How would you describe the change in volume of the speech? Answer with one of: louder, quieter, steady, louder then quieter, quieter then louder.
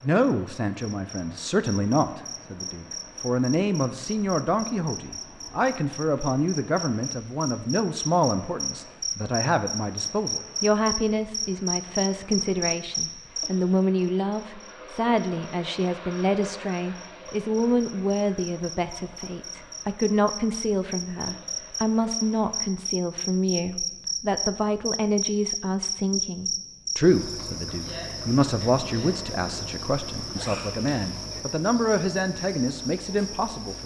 steady.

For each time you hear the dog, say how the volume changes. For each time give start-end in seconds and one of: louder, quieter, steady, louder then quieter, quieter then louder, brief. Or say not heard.
not heard.